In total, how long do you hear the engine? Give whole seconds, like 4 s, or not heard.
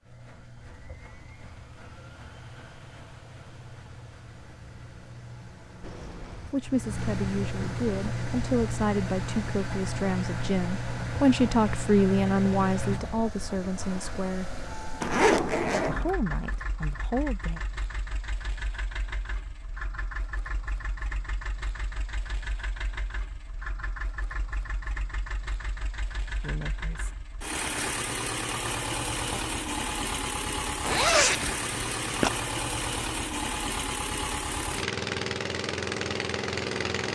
37 s.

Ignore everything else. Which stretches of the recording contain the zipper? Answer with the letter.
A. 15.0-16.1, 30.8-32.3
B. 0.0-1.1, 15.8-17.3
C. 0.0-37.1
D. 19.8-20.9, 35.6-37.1
A.